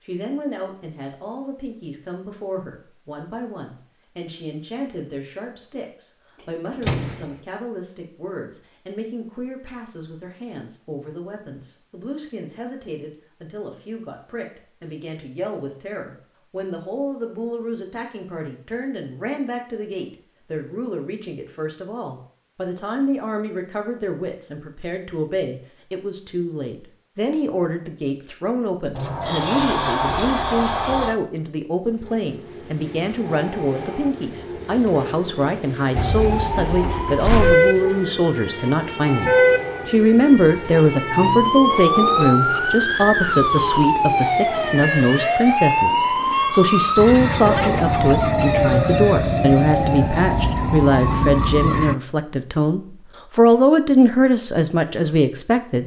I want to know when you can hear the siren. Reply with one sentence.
You can hear the siren from 36.0 to 52.0 s.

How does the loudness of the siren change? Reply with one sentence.
The loudness of the siren stays about the same.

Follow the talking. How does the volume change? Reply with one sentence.
The loudness of the talking goes up.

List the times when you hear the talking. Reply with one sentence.
You can hear the talking from 0.0 to 55.8 s.